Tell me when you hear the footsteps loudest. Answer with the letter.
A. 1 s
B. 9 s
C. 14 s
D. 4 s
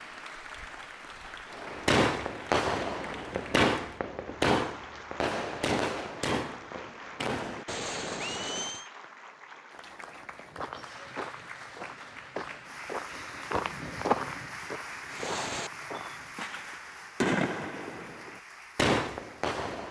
C.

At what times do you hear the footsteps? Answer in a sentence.
You can hear the footsteps from 9.9 to 16.6 s.